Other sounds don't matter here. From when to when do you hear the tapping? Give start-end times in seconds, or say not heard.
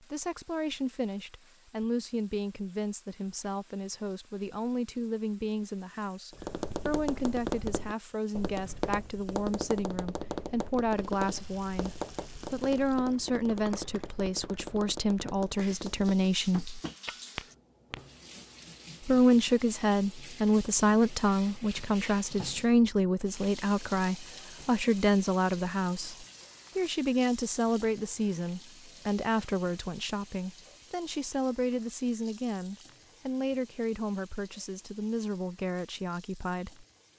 6.3-18.0.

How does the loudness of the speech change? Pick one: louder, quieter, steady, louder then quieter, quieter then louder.
louder then quieter.